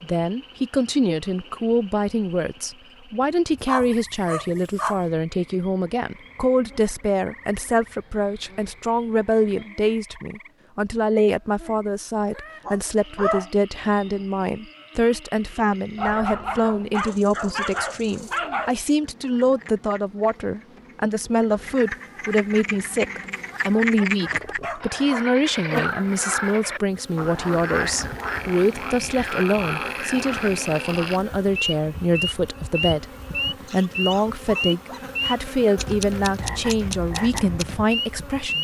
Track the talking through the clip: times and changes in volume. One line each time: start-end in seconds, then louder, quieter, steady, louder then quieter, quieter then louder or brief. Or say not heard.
0.0-38.5 steady.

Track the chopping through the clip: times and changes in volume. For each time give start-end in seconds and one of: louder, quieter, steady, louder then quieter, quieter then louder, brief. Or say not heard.
not heard.